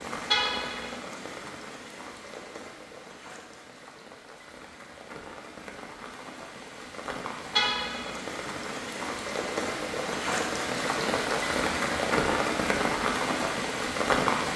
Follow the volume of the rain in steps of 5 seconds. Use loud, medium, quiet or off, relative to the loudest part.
quiet, medium, loud.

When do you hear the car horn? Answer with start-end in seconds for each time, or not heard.
0.3-0.9, 7.5-8.2.